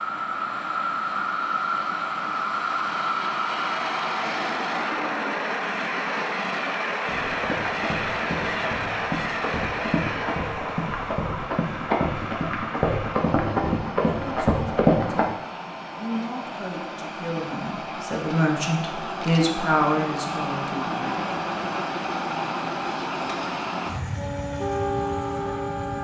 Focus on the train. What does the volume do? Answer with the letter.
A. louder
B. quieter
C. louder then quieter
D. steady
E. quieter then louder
E.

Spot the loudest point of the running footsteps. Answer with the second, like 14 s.
15 s.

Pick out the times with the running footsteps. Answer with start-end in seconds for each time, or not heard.
7.0-15.2.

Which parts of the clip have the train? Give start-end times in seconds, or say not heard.
0.0-26.0.